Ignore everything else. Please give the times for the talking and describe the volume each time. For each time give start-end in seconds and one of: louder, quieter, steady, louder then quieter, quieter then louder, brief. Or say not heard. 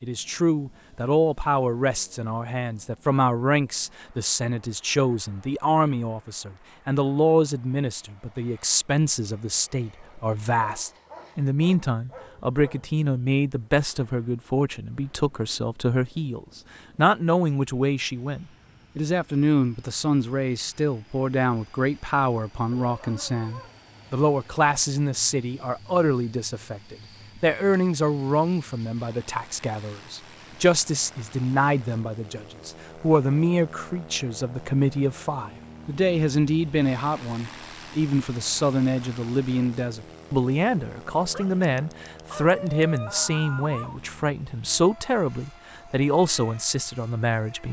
0.0-47.6 steady.